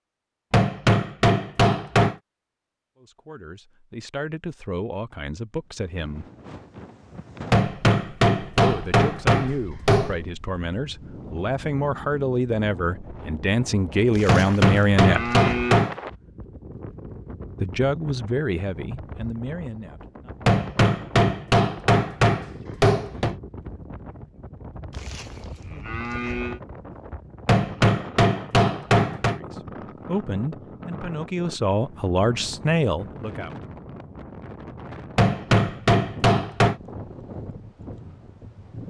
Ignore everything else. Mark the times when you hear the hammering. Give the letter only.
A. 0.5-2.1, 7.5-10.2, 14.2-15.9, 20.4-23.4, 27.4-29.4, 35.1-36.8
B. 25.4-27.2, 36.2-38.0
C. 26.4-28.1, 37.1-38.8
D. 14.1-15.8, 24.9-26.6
A.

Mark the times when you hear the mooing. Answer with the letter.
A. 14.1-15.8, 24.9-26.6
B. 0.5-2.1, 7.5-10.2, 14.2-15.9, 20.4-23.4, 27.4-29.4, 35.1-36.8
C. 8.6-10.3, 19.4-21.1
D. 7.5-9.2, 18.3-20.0
A.